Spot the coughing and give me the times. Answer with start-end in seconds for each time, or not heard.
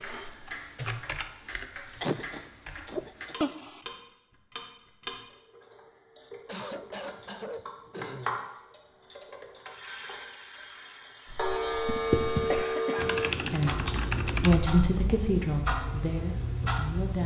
2.0-3.8, 6.5-8.5, 12.5-13.1.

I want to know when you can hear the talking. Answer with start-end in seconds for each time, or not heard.
13.5-17.2.